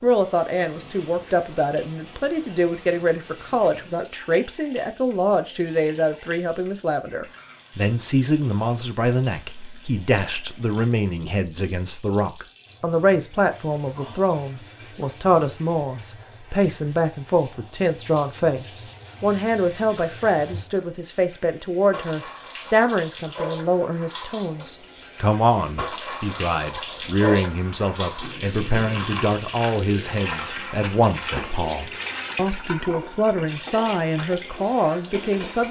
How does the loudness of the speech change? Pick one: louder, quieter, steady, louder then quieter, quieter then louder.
steady.